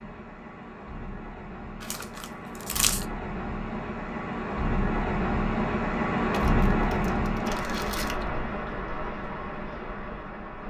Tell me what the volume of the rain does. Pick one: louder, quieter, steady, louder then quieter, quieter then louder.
louder then quieter.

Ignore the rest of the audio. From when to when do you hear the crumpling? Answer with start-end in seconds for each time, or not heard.
1.8-3.0, 6.3-8.3.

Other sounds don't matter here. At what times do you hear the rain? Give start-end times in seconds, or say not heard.
0.0-10.6.